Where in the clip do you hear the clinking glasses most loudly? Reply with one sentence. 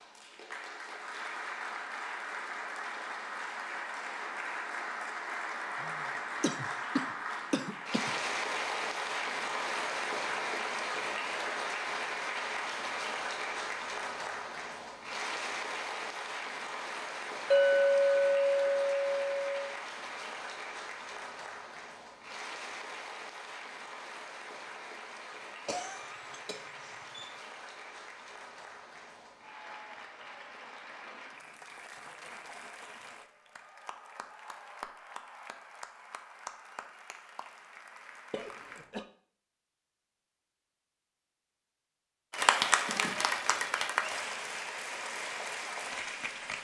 The loudest moment of the clinking glasses is at 18 seconds.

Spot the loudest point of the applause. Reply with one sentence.
The volume of the applause peaks at 43 seconds.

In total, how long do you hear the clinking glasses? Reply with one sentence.
The clinking glasses can be heard for 2 seconds in total.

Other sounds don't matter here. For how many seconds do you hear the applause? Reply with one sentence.
The applause can be heard for 43 seconds in total.